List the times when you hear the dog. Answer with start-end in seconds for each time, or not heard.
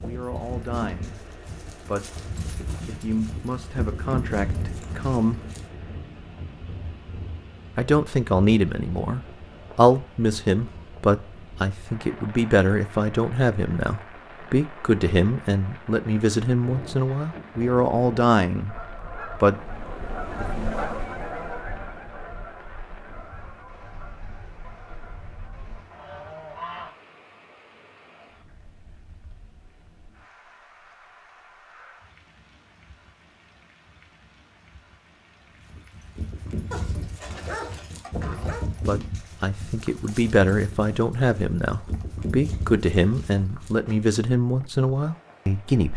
36.7-38.6.